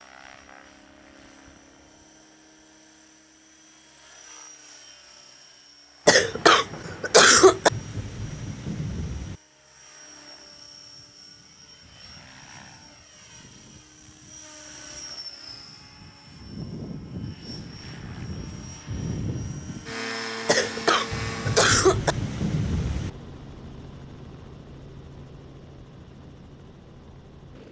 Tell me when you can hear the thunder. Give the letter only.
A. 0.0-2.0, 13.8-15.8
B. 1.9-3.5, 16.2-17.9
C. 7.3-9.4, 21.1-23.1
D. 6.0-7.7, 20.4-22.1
C.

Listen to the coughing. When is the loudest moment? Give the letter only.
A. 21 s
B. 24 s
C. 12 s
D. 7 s
D.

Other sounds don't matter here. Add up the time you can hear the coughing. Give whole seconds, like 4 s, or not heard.
3 s.